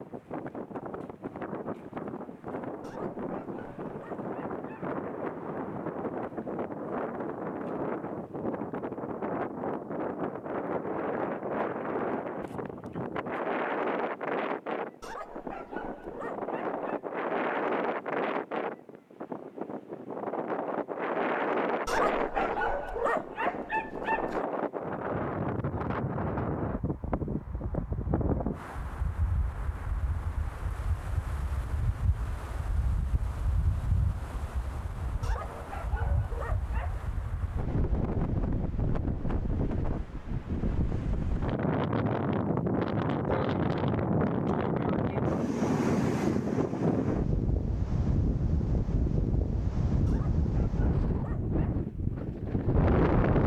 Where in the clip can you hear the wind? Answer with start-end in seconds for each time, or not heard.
0.0-53.4.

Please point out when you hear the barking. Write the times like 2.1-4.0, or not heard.
2.8-4.9, 15.0-16.9, 21.9-24.4, 35.2-37.0, 50.0-51.8.